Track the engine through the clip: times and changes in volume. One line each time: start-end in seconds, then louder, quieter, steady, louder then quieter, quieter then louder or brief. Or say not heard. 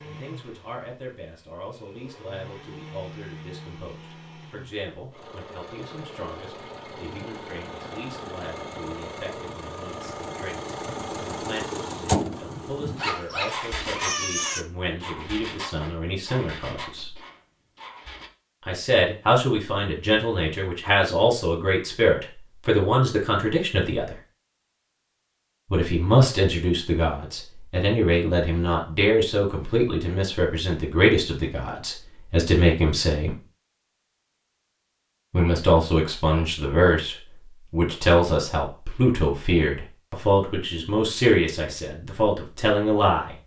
0.0-18.3 louder then quieter.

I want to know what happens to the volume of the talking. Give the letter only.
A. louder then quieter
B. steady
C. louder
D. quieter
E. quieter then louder
C.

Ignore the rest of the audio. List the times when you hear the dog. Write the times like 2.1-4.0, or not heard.
13.0-14.7.